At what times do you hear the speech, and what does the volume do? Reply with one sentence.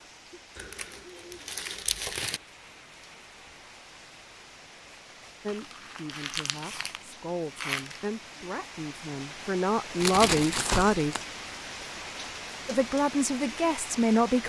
You can hear the speech from 5.4 to 11.2 s, getting louder; and briefly from 12.7 to 14.4 s.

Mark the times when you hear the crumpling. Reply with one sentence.
The crumpling can be heard from 0.6 to 2.4 s, from 5.5 to 8.1 s and from 10.0 to 11.2 s.